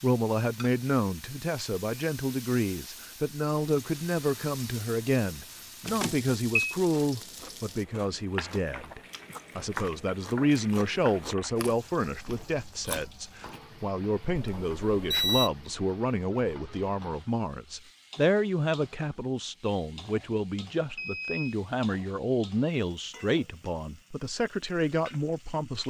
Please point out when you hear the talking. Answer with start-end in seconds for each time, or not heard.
0.0-25.8.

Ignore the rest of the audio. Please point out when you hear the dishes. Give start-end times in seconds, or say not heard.
not heard.